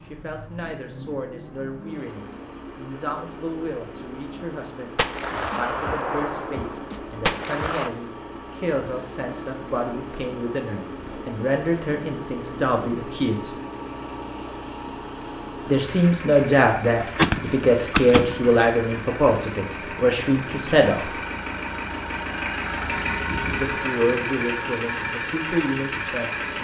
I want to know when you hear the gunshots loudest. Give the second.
17 s.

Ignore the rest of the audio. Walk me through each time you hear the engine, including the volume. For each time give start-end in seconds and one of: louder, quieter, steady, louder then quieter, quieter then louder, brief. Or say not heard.
0.0-26.5 louder.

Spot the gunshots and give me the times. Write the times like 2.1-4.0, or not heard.
5.0-7.9, 16.9-18.4.